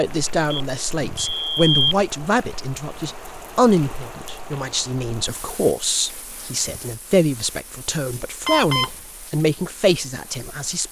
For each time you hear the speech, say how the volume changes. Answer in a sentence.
You can hear the speech from 0.0 to 10.8 s, at a steady volume.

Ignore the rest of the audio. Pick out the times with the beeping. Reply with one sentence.
The beeping can be heard from 0.5 to 2.0 s and from 8.4 to 8.9 s.